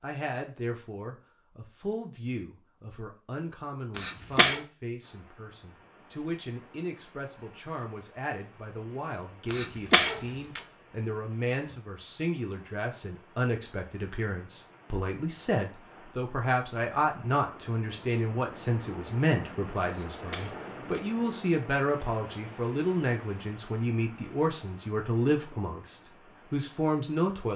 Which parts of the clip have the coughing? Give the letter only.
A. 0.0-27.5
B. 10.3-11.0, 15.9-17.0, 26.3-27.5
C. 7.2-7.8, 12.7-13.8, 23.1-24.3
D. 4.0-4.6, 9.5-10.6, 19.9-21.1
D.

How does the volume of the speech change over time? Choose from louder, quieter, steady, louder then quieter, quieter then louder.
louder.